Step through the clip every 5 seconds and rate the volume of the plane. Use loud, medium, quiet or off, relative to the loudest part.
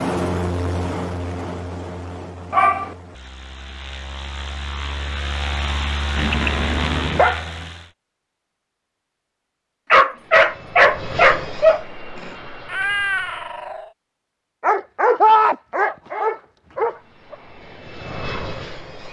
loud, loud, medium, medium.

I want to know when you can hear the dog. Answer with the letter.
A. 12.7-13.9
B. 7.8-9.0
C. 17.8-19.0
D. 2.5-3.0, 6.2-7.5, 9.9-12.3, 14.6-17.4
D.